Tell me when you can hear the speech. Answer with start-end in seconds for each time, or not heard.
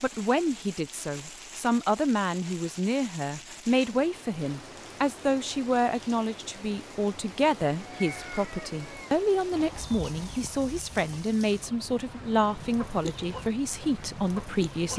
0.0-14.9.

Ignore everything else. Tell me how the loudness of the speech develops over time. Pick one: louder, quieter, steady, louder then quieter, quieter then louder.
steady.